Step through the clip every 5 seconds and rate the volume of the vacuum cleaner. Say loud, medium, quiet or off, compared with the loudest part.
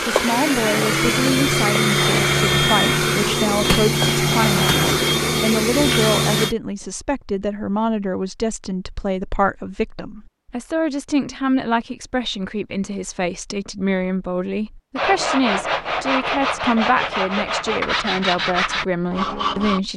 loud, loud, off, off.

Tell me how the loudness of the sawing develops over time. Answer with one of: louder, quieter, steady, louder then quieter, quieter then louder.
steady.